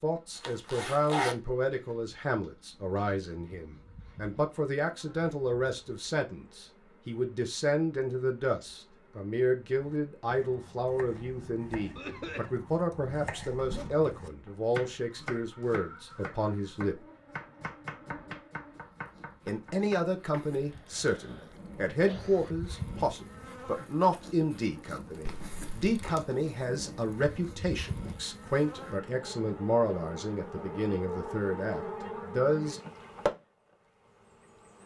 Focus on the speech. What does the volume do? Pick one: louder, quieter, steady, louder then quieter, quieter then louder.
steady.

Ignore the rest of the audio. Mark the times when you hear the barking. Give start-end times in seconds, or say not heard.
not heard.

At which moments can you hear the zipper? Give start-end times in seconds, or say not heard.
0.3-1.4, 13.6-14.1, 25.2-26.1.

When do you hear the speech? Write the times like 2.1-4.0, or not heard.
0.0-17.0, 19.4-32.8.